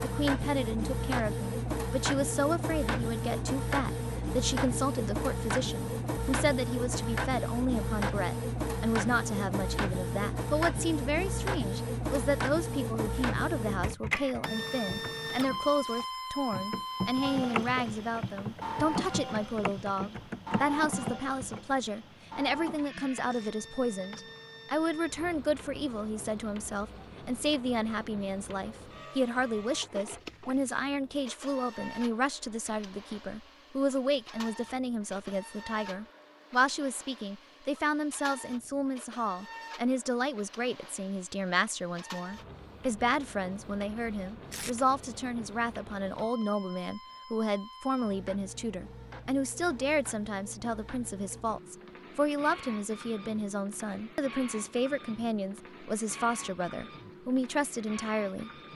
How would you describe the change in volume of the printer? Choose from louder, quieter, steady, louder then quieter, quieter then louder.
quieter.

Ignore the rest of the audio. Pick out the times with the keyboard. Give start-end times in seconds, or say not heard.
14.8-21.8.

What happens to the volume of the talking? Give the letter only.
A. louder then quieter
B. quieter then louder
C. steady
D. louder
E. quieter
C.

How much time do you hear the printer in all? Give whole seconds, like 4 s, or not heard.
59 s.